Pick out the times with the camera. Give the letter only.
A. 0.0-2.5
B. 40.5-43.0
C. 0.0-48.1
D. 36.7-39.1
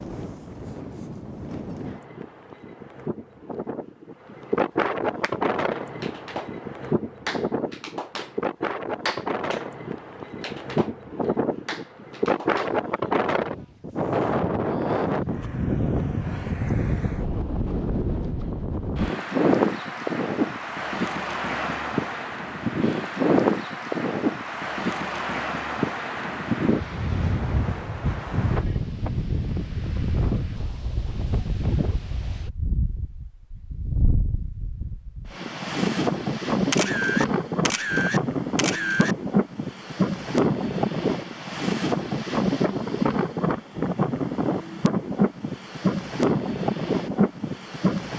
D.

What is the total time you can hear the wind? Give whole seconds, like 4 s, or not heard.
48 s.